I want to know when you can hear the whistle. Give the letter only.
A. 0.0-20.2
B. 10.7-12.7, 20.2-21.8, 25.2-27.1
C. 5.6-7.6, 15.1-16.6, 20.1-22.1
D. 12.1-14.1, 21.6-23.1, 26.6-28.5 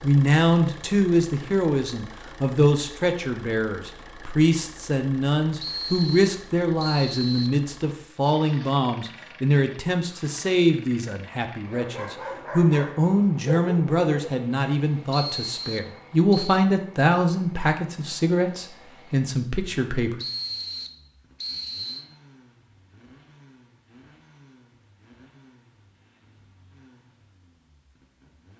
C.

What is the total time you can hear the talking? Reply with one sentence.
You can hear the talking for 20 seconds altogether.